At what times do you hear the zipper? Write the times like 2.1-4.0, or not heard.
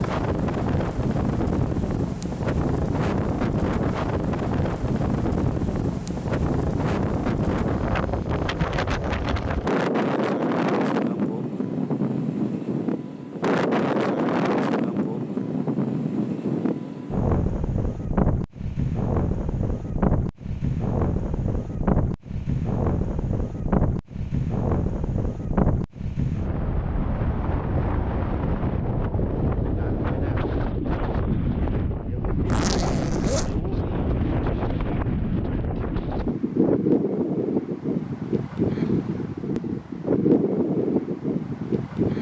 32.5-33.6.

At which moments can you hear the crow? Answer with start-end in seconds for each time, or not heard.
not heard.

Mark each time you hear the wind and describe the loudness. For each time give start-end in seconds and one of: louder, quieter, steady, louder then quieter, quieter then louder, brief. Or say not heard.
0.0-42.1 steady.